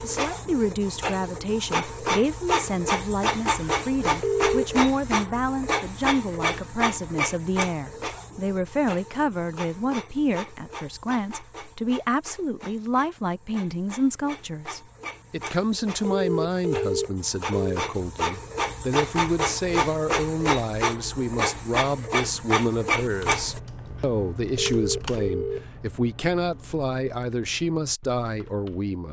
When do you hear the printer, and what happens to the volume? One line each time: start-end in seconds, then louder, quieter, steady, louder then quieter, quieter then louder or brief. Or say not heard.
0.0-23.6 quieter then louder.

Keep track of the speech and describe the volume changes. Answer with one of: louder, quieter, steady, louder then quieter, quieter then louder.
steady.